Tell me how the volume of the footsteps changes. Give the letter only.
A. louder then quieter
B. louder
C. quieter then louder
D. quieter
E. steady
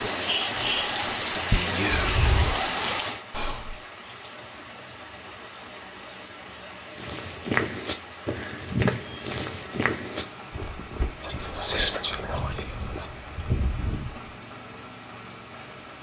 C.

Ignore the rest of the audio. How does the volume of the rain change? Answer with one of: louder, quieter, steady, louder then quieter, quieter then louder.
quieter.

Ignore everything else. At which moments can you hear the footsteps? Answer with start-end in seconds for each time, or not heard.
7.0-14.3.